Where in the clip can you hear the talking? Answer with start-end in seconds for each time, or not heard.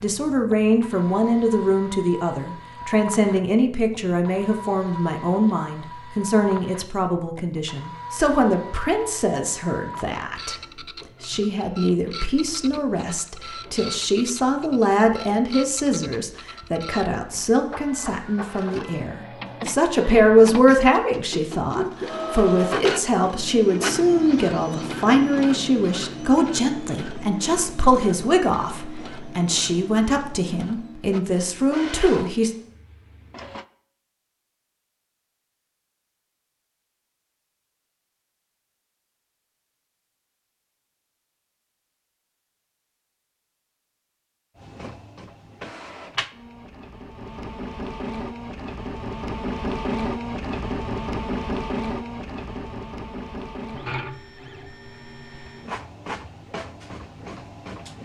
0.0-10.6, 11.2-32.5.